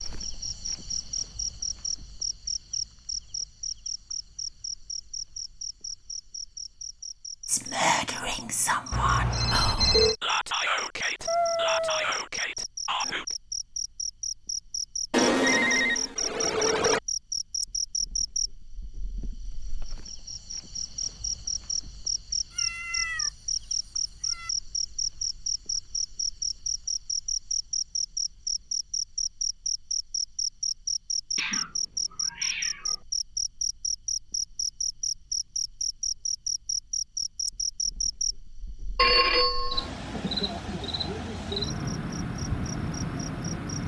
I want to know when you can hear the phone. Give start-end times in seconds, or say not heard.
8.9-10.2, 15.1-17.0, 39.0-39.9.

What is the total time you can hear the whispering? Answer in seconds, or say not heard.
6 s.